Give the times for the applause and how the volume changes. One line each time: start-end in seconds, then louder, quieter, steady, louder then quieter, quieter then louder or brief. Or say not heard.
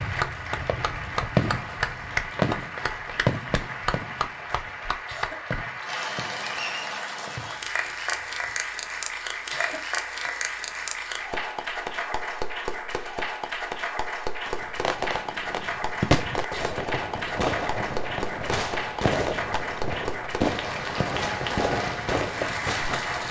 0.0-23.2 steady.